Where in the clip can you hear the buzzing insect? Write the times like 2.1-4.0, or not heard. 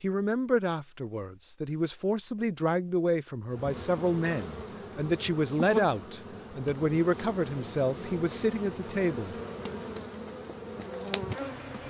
3.5-11.8.